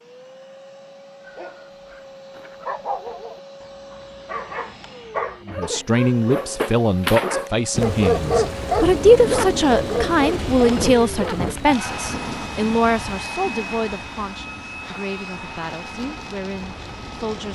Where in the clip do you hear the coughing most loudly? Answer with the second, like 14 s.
11 s.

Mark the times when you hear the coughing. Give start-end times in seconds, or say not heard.
5.2-6.0, 10.7-11.6.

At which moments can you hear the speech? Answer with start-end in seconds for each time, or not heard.
5.5-17.5.